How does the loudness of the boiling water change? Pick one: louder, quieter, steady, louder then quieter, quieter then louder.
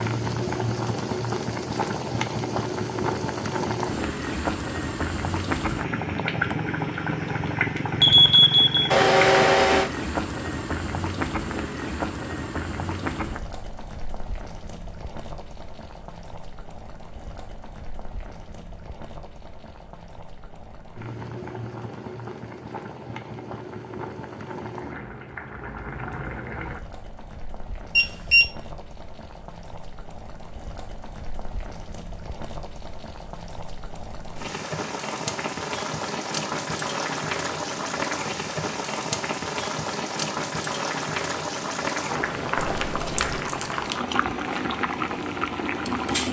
quieter then louder.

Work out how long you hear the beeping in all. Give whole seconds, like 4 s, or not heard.
3 s.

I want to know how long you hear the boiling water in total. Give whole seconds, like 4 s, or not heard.
46 s.